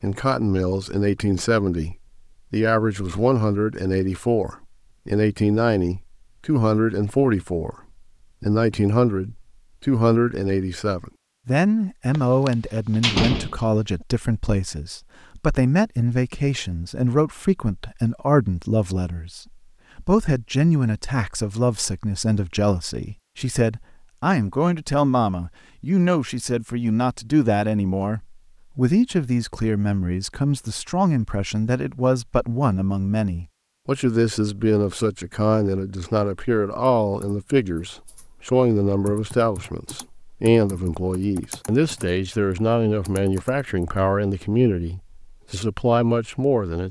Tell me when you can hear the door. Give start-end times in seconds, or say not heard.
12.2-14.1.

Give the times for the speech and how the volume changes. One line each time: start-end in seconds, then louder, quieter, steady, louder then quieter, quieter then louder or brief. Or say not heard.
0.0-7.8 steady
8.4-46.8 steady.